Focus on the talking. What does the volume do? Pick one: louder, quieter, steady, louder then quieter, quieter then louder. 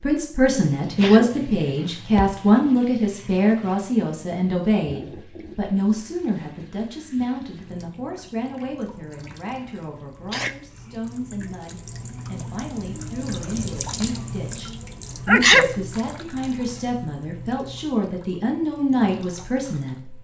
quieter then louder.